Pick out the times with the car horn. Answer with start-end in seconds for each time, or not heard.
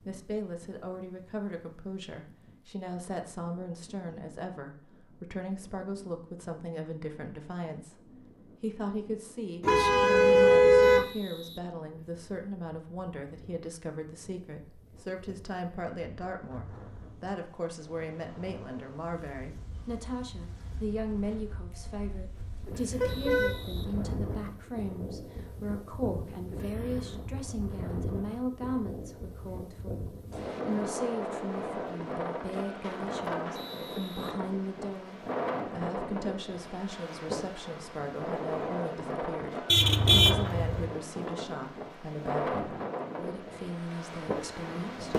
9.6-11.1, 23.0-24.5, 39.6-40.9.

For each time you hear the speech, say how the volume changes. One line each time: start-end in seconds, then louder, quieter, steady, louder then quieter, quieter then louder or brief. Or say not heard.
0.1-45.1 steady.